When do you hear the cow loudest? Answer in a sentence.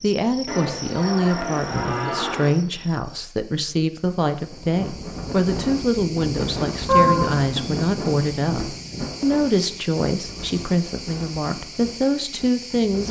The volume of the cow peaks at 7 seconds.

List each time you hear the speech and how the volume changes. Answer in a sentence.
The speech can be heard from 0.0 to 13.0 s, at a steady volume.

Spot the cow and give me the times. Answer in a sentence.
You can hear the cow from 0.5 to 2.5 s and from 6.8 to 8.7 s.